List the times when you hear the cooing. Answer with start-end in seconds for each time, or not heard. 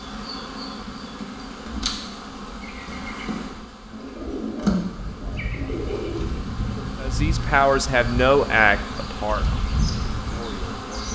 3.9-6.8.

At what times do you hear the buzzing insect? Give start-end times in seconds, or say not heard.
0.0-11.1.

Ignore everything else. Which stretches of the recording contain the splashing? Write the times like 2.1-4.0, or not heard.
not heard.